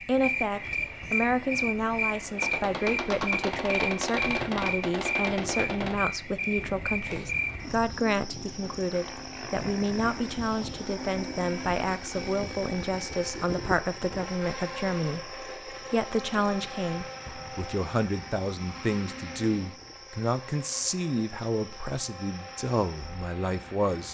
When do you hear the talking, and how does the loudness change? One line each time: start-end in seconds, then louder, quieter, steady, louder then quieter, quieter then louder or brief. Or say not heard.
0.1-24.0 steady.